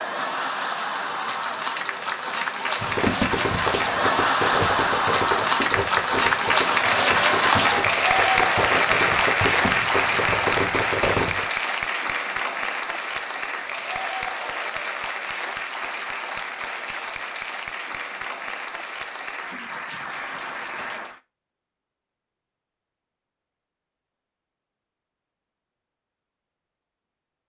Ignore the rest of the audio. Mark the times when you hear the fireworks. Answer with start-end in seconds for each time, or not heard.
2.8-11.4.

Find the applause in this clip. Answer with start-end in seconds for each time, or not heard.
0.0-21.2.